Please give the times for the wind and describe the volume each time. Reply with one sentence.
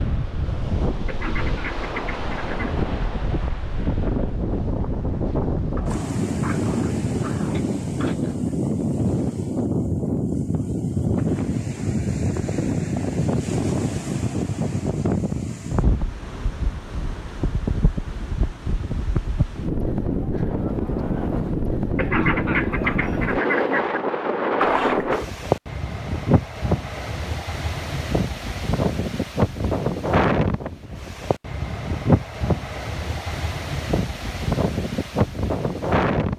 You can hear the wind from 0.0 to 36.3 s, at a steady volume.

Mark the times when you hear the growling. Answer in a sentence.
The growling can be heard from 5.8 to 8.6 s and from 24.6 to 25.1 s.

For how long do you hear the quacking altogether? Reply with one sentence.
You can hear the quacking for 4 seconds altogether.